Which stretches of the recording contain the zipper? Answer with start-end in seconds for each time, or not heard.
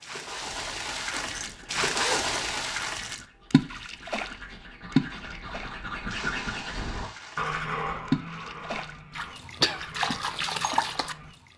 1.1-2.4.